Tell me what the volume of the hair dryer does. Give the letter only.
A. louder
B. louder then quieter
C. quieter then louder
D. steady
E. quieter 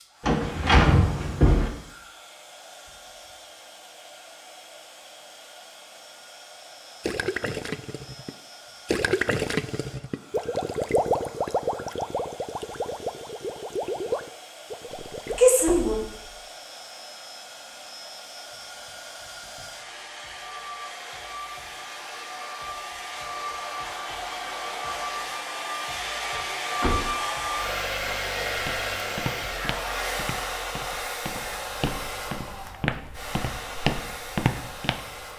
A.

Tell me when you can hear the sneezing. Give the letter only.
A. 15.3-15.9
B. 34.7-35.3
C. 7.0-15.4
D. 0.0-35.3
A.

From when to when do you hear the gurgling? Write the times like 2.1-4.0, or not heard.
7.0-15.4.